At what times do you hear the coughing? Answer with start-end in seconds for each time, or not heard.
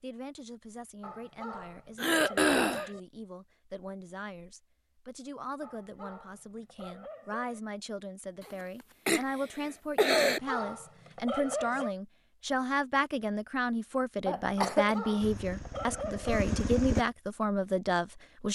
2.0-2.9, 8.4-10.4, 14.2-14.9.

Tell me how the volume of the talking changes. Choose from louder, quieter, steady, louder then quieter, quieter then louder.
louder.